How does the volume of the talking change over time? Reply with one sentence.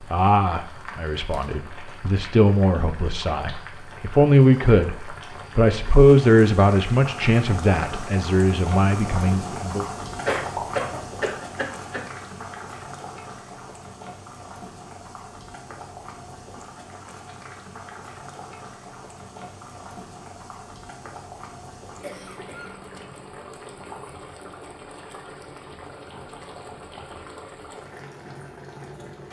The loudness of the talking goes up, then down.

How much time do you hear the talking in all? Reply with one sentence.
The talking can be heard for 10 seconds in total.